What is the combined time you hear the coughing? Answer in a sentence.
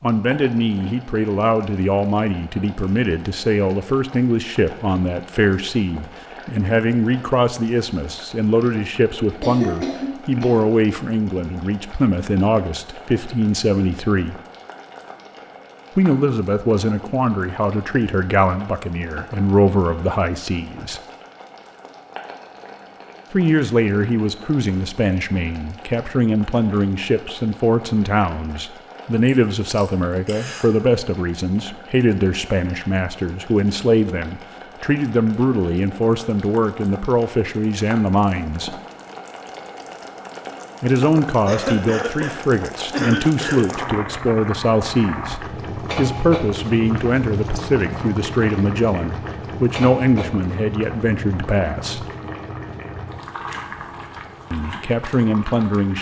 The coughing can be heard for 5 seconds in total.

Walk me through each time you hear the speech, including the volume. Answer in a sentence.
You can hear the speech from 0.0 to 14.4 s, at a steady volume; from 15.9 to 21.0 s, at a steady volume; from 23.3 to 38.8 s, at a steady volume; from 40.8 to 52.0 s, at a steady volume; and briefly from 54.5 to 55.9 s.